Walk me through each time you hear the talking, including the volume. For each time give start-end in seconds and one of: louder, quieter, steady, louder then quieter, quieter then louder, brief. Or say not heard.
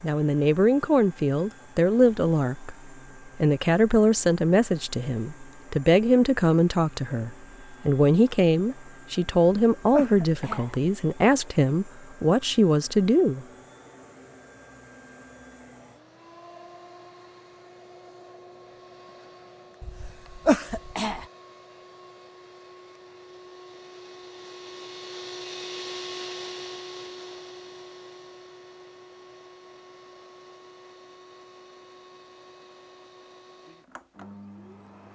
0.0-13.4 steady.